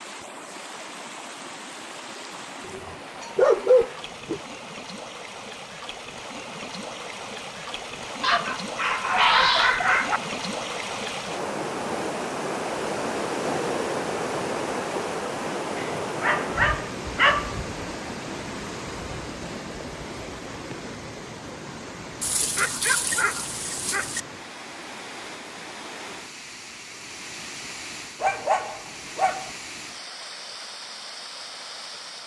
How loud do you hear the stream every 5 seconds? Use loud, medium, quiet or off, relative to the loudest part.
medium, medium, loud, loud, medium, medium, medium.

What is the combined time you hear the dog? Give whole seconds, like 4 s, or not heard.
9 s.